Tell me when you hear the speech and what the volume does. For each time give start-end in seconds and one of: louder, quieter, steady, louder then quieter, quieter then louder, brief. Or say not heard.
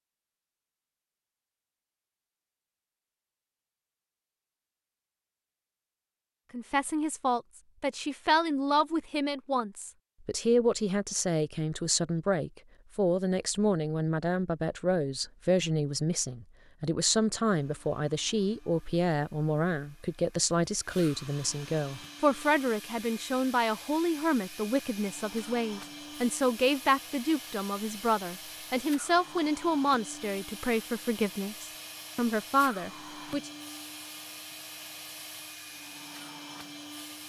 6.5-33.5 steady.